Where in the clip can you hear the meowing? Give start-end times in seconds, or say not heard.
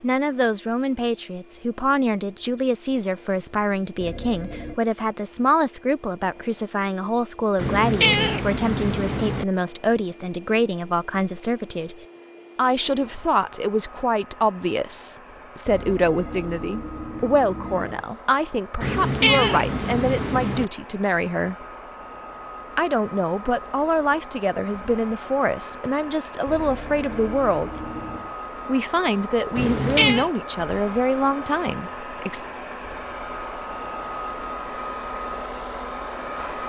7.5-9.4, 18.8-20.6, 29.6-30.3.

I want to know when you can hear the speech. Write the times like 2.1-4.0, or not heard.
0.0-11.9, 12.6-21.6, 22.8-27.8, 28.6-32.4.